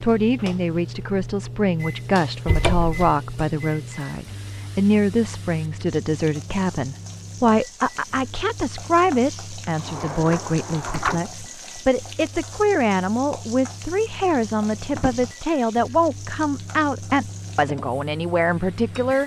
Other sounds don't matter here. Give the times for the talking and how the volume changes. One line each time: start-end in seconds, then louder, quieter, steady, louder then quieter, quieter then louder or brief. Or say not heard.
0.0-19.2 steady.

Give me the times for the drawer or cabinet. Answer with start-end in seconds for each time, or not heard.
2.5-3.0, 9.8-11.2, 14.9-15.3.